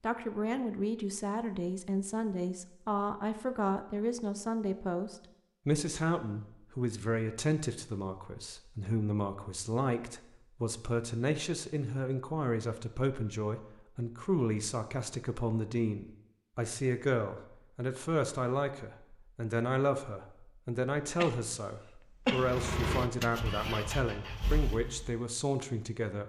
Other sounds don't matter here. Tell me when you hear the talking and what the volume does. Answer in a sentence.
The talking can be heard from 0.0 to 26.2 s, at a steady volume.